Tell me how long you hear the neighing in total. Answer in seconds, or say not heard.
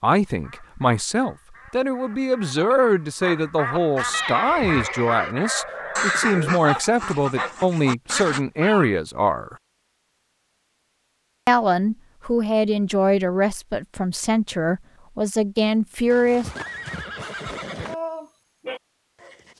3 s.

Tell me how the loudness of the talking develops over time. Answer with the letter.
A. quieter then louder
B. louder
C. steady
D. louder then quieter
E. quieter
C.